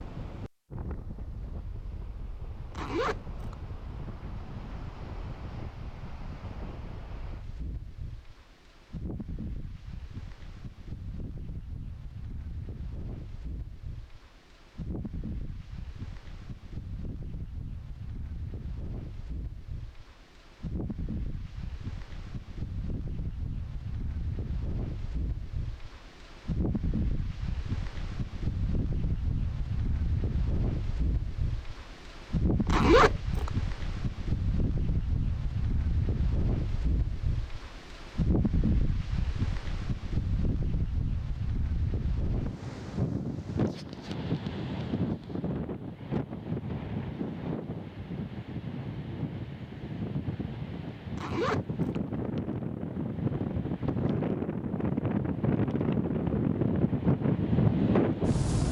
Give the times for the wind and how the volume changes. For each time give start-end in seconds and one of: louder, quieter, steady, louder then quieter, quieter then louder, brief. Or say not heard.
0.0-58.6 louder.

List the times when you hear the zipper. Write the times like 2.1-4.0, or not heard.
2.7-3.5, 32.6-33.5, 51.1-52.0.